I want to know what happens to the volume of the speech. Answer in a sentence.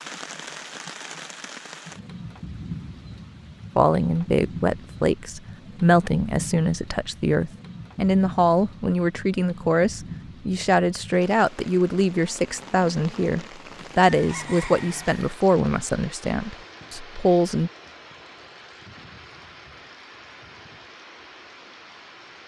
The volume of the speech stays about the same.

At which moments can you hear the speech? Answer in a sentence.
The speech can be heard from 3.8 to 17.7 s.